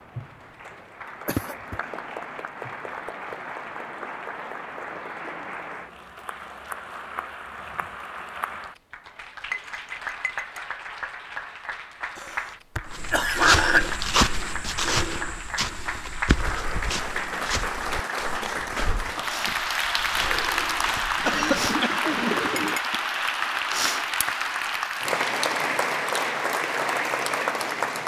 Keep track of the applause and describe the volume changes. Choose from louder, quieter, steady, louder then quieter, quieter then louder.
louder.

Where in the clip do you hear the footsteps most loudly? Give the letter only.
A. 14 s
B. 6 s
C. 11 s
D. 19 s
A.